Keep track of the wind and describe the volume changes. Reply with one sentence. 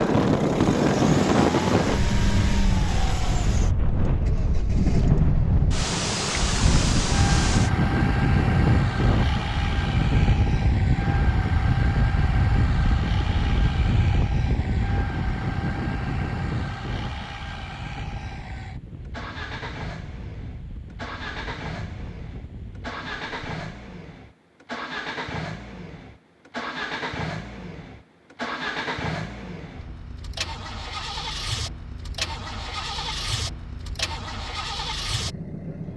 The volume of the wind goes down.